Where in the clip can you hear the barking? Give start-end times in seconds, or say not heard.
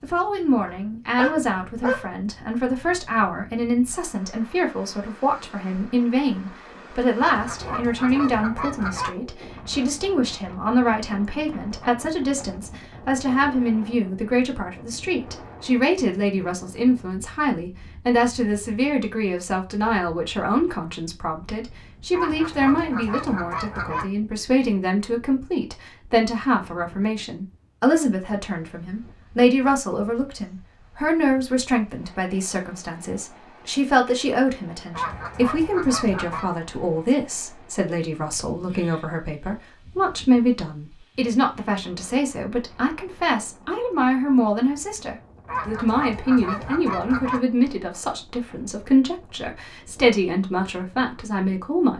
0.7-2.1.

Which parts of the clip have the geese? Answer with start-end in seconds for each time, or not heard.
7.2-9.2, 22.1-24.1, 34.9-36.5, 45.5-47.4.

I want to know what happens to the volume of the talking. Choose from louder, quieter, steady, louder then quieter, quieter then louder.
steady.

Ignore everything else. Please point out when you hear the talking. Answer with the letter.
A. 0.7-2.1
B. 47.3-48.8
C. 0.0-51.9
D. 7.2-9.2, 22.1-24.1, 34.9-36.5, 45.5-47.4
C.